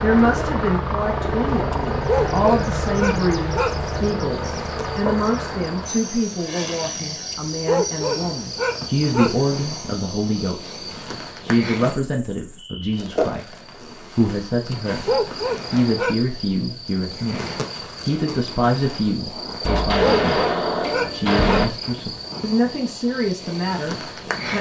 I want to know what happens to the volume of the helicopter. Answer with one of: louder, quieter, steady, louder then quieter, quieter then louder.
quieter.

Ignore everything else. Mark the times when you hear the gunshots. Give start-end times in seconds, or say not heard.
4.8-5.9, 19.6-21.6.